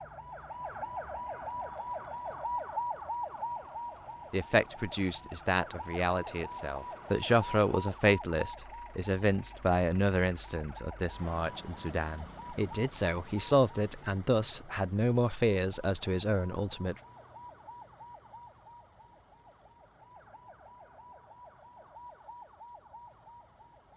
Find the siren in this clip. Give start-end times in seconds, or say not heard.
0.0-23.9.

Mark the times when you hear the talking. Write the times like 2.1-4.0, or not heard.
4.3-16.9.